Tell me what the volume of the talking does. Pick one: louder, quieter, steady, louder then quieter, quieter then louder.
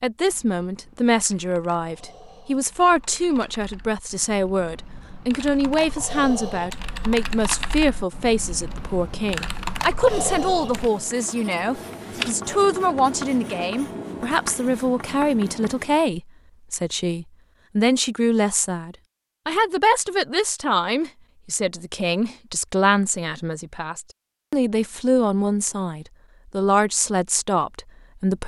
steady.